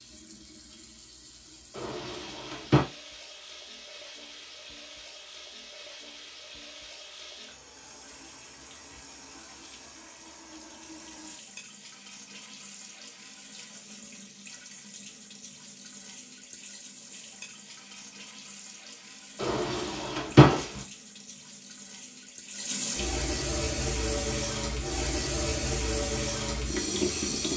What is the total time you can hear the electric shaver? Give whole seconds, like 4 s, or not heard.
not heard.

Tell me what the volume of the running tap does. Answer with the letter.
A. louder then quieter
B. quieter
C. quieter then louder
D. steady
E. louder
E.